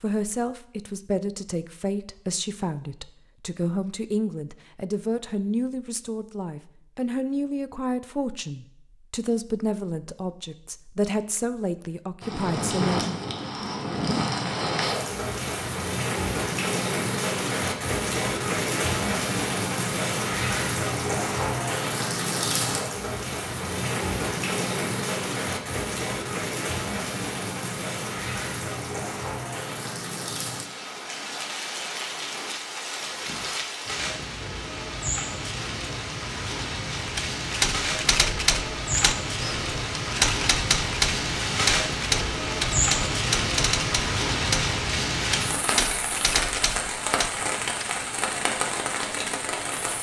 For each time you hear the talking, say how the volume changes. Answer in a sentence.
The talking can be heard from 0.0 to 13.2 s, at a steady volume.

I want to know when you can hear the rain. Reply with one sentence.
You can hear the rain from 12.2 to 49.9 s.